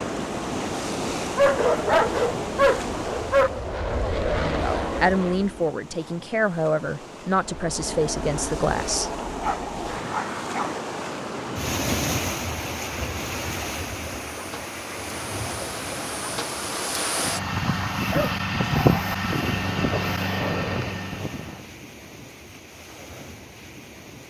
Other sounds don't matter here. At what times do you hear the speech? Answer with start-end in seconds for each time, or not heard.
4.3-9.1.